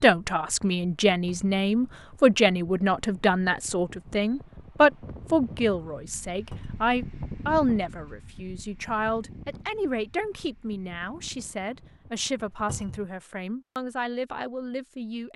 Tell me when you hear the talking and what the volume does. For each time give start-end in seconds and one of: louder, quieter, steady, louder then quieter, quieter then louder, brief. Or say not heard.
0.0-15.3 quieter.